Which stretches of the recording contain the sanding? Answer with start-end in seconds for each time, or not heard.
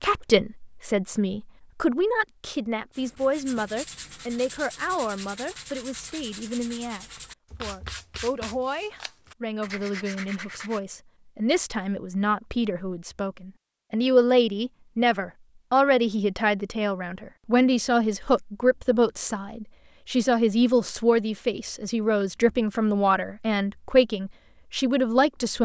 2.9-10.8.